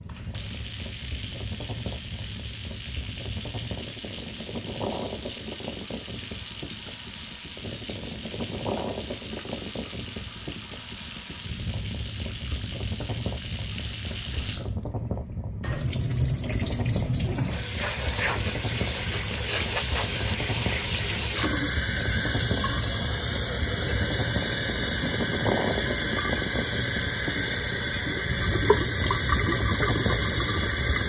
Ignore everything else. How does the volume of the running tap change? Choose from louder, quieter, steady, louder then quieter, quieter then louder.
louder.